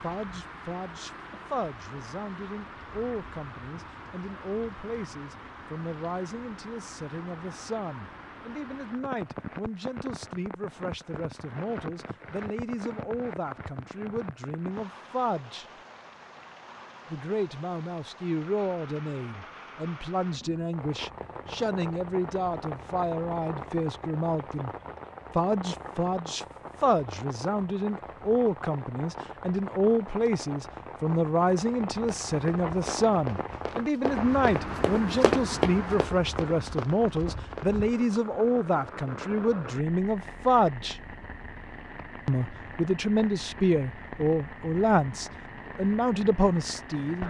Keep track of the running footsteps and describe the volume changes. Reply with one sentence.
The volume of the running footsteps goes up, then down.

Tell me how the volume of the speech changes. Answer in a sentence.
The loudness of the speech goes up.